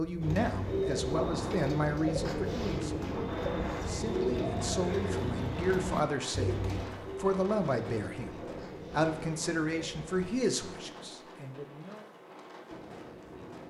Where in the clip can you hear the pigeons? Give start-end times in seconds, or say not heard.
0.2-10.3.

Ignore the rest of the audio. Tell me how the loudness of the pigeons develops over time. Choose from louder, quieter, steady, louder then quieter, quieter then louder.
quieter.